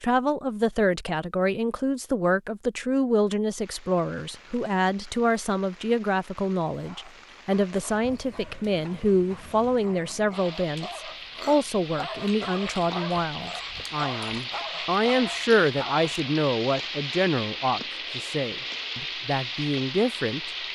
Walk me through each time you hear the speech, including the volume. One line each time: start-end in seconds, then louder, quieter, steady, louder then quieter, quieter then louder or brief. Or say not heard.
0.0-20.5 steady.